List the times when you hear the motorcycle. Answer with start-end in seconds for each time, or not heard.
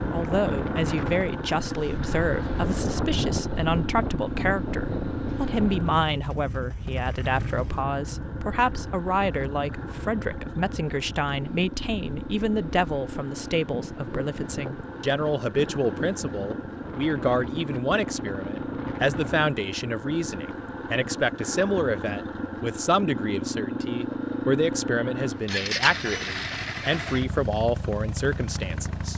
0.0-29.1.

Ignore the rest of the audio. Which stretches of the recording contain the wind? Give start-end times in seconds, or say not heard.
0.0-19.4.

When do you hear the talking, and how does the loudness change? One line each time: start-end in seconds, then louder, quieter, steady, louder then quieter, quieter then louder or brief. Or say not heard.
0.1-29.1 steady.